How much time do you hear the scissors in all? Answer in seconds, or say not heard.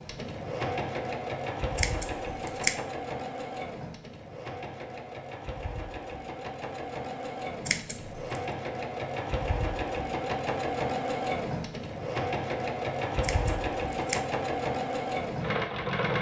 3 s.